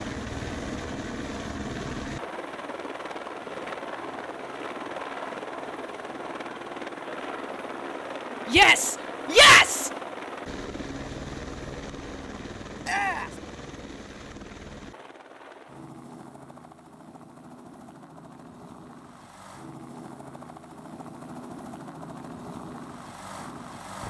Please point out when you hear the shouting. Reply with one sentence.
You can hear the shouting from 8.4 to 9.9 s and from 12.8 to 13.3 s.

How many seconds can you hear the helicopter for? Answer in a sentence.
You can hear the helicopter for 24 seconds altogether.